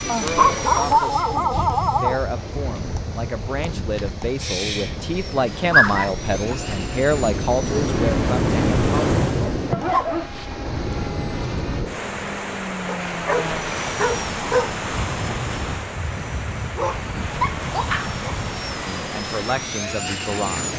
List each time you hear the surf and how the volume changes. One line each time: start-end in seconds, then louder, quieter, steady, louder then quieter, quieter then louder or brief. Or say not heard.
0.0-20.7 louder then quieter.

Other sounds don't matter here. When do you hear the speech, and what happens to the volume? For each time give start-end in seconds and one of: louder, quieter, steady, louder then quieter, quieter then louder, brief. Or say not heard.
0.1-9.1 louder
18.9-20.7 brief.